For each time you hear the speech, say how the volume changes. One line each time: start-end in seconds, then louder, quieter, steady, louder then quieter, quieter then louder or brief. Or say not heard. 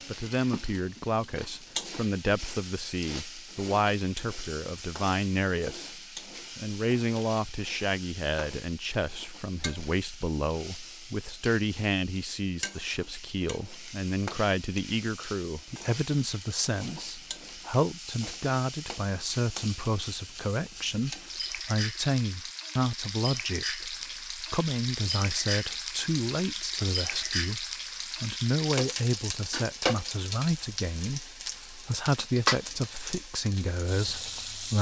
0.1-34.7 steady.